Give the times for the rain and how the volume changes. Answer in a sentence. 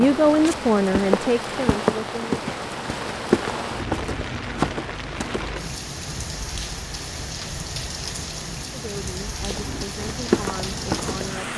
The rain can be heard from 0.0 to 11.5 s, at a steady volume.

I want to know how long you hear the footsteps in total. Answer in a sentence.
You can hear the footsteps for 8 seconds altogether.